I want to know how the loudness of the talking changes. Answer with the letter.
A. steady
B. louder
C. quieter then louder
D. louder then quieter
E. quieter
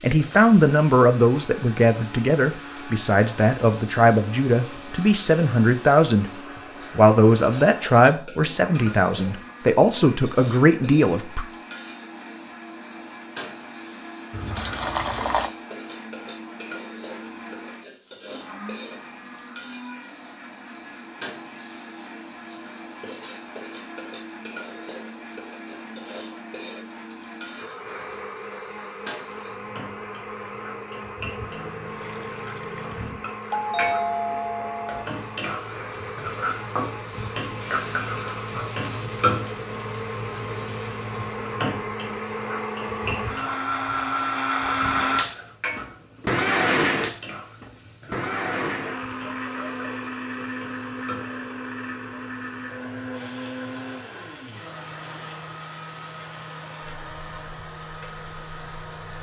A.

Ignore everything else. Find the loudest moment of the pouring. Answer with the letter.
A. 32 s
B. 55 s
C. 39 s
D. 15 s
D.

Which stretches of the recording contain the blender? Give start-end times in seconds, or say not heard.
0.1-59.1.